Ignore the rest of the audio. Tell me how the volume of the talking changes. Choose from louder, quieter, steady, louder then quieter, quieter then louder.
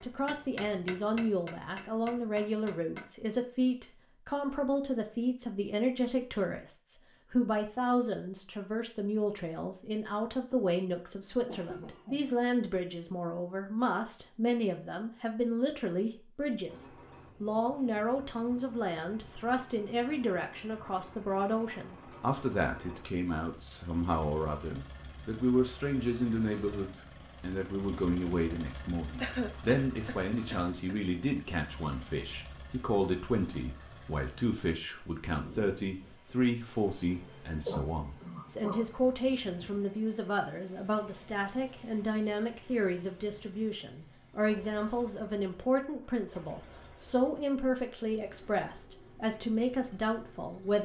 steady.